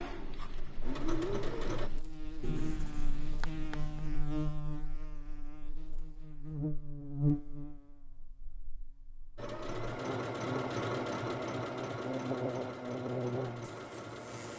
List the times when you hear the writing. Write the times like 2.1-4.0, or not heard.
0.0-4.4.